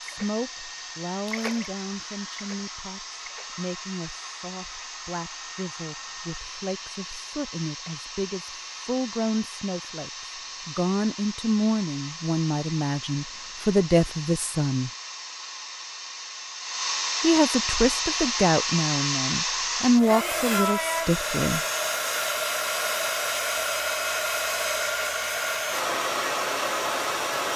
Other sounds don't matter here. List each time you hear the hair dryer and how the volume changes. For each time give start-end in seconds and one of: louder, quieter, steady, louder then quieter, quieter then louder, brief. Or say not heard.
0.0-27.5 louder.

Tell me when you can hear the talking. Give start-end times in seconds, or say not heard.
0.0-14.9, 17.2-21.6.